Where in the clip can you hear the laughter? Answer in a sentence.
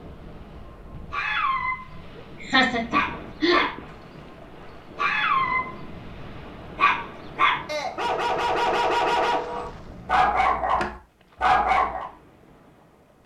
The laughter can be heard from 2.4 to 3.6 s.